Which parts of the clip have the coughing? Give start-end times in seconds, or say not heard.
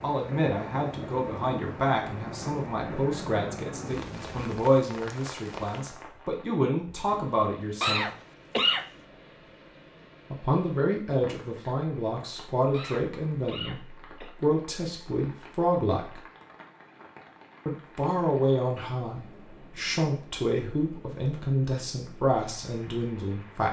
7.8-8.8, 12.7-14.3.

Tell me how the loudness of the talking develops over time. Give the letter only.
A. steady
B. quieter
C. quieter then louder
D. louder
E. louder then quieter
A.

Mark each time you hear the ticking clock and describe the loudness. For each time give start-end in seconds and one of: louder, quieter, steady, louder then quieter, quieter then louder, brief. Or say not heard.
not heard.